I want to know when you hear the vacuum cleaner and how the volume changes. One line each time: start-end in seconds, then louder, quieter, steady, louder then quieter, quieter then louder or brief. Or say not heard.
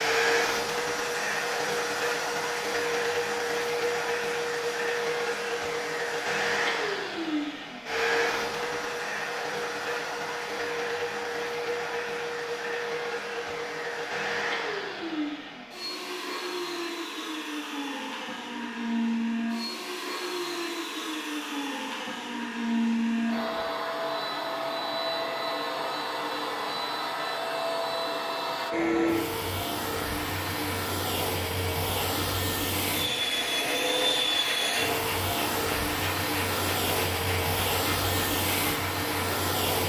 0.0-39.8 steady.